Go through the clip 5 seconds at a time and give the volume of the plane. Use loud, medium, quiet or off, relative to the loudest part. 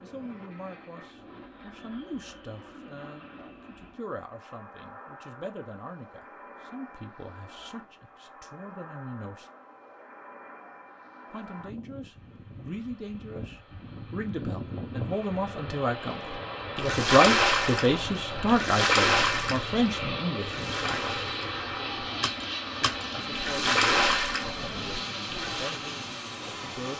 quiet, quiet, medium, loud, loud, loud.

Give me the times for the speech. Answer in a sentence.
The speech can be heard from 0.0 to 9.5 s, from 11.3 to 21.1 s and from 22.8 to 26.9 s.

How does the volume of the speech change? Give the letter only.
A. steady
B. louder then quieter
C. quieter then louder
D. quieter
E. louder
B.